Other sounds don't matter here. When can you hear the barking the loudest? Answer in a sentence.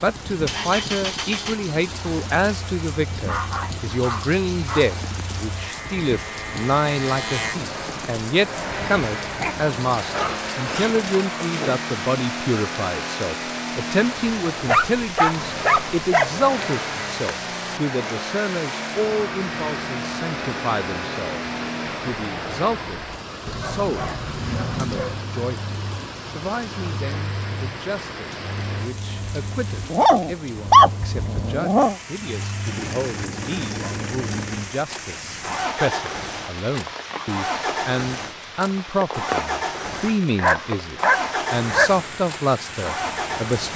The loudest moment of the barking is at 31 seconds.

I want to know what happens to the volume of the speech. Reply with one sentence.
The loudness of the speech goes down, then up.